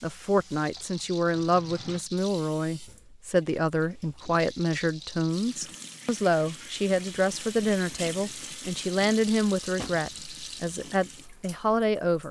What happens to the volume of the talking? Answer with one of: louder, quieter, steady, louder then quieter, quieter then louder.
steady.